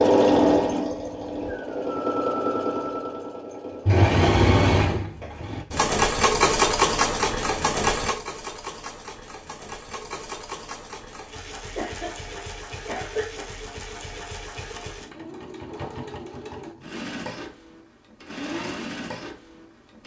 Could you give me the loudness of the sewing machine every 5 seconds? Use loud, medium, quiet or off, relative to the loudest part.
loud, loud, quiet, quiet.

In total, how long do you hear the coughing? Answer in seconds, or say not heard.
2 s.